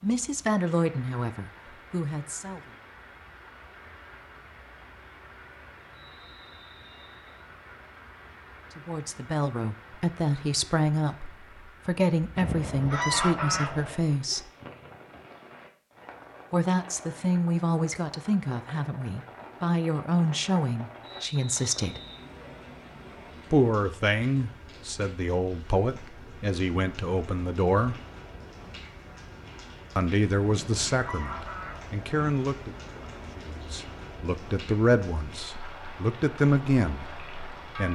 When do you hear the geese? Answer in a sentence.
The geese can be heard from 12.3 to 14.1 s and from 30.4 to 32.1 s.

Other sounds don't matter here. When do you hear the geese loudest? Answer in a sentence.
The volume of the geese peaks at 13 seconds.